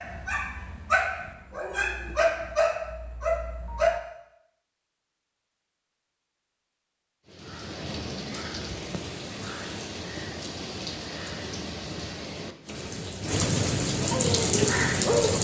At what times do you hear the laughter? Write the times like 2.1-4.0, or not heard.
not heard.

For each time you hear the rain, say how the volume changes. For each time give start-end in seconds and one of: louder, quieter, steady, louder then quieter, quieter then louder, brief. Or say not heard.
7.2-15.4 louder.